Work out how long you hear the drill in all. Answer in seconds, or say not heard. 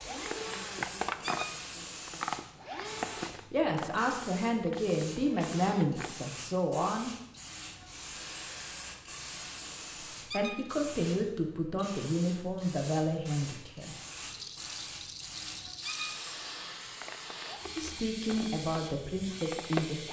9 s.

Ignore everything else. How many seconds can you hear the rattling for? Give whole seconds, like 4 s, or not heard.
2 s.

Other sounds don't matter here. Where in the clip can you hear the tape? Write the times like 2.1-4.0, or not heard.
not heard.